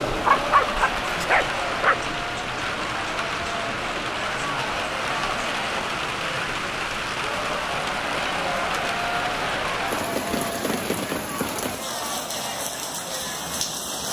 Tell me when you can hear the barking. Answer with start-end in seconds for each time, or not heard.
0.2-2.0.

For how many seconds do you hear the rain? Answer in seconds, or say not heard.
14 s.